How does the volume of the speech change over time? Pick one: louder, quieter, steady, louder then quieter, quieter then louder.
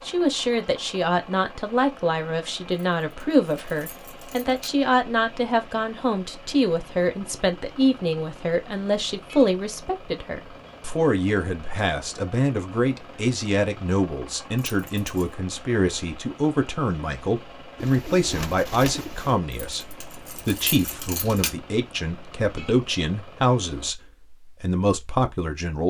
steady.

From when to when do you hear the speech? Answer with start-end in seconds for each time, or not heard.
0.1-25.8.